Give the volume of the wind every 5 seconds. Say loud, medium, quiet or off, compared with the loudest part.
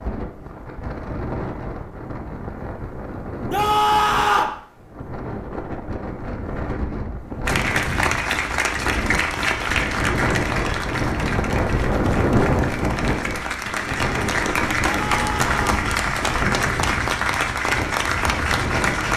medium, medium, loud, medium.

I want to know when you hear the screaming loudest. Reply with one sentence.
The volume of the screaming peaks at 4 seconds.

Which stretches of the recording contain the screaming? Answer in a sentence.
The screaming can be heard from 3.5 to 4.5 s and from 14.8 to 15.8 s.